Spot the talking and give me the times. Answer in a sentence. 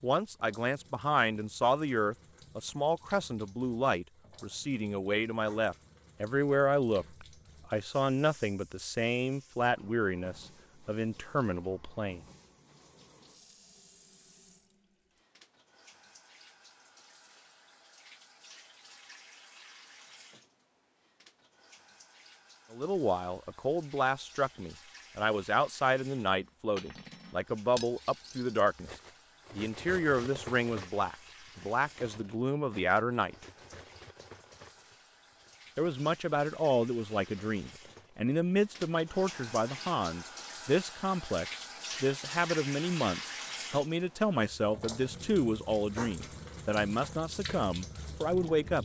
You can hear the talking from 0.0 to 12.2 s, from 22.7 to 28.9 s, from 29.6 to 33.4 s and from 35.8 to 48.8 s.